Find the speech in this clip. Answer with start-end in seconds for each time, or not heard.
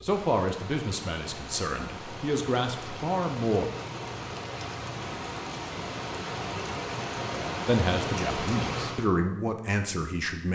0.0-3.6, 7.7-10.5.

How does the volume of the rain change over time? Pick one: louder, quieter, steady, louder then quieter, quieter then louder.
louder.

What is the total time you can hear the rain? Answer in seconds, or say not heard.
9 s.